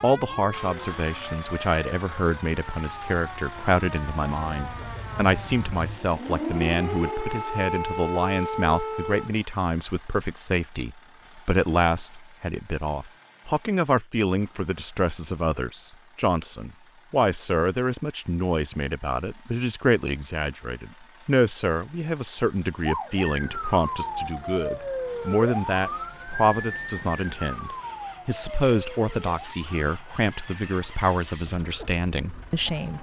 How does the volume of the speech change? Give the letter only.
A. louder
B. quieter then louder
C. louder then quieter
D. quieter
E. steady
E.